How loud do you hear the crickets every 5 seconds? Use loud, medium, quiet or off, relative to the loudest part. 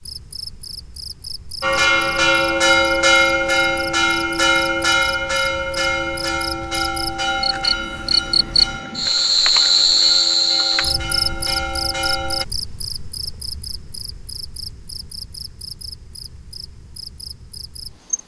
quiet, loud, loud, quiet.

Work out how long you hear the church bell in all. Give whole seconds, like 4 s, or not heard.
11 s.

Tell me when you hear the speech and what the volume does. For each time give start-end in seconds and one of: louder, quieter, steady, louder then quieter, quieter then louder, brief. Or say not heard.
not heard.